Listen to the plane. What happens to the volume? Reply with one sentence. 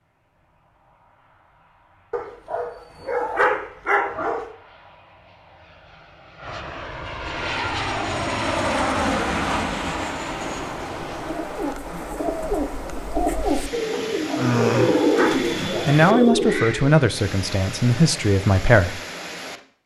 The volume of the plane goes up.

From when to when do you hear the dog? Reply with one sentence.
The dog can be heard from 2.1 to 4.5 s and from 13.9 to 15.5 s.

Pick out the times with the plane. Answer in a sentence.
You can hear the plane from 0.3 to 11.3 s.